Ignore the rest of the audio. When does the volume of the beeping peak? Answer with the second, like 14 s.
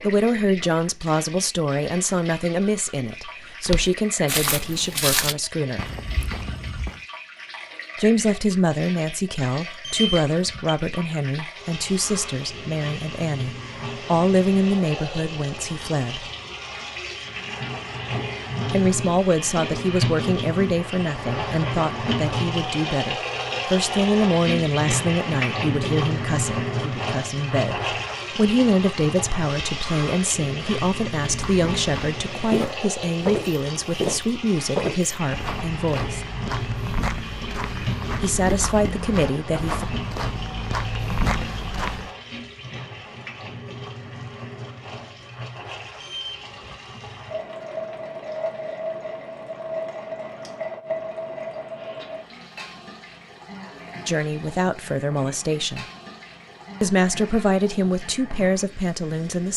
10 s.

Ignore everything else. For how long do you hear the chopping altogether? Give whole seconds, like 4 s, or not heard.
not heard.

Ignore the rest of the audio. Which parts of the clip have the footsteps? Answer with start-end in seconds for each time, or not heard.
3.6-7.0, 31.2-42.1.